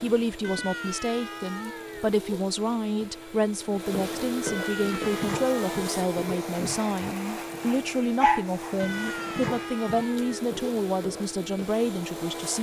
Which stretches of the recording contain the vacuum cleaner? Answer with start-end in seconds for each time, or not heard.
0.0-12.5.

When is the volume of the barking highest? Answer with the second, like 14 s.
8 s.